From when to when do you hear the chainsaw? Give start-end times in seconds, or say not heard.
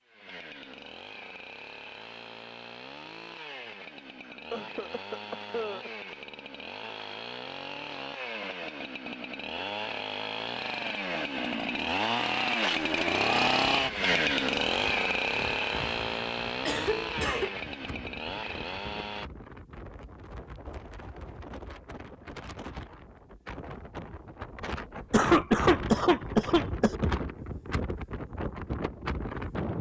0.0-19.3.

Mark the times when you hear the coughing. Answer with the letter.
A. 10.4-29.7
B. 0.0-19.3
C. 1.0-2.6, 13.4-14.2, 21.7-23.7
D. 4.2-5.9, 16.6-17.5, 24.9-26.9
D.